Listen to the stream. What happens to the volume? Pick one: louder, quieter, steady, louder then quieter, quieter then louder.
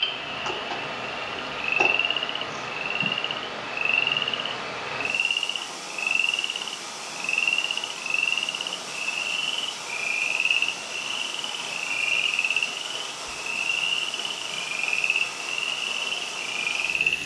steady.